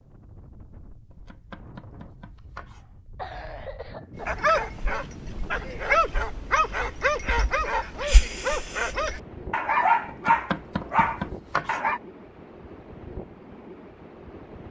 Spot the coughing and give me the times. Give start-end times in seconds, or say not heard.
2.4-4.2.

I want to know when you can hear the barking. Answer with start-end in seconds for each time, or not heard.
4.2-12.0.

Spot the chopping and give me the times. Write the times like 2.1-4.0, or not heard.
1.1-2.9, 10.1-11.8.